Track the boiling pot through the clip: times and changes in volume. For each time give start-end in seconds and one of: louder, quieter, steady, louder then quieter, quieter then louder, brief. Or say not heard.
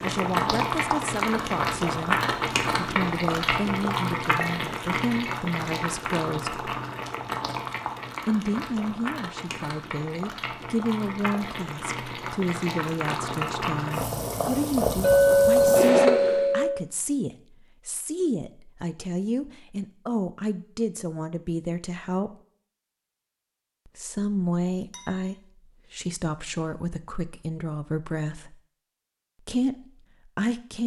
0.0-16.6 quieter then louder.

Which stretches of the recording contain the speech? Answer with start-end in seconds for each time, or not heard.
0.0-6.6, 8.2-22.4, 23.9-28.6, 29.4-30.8.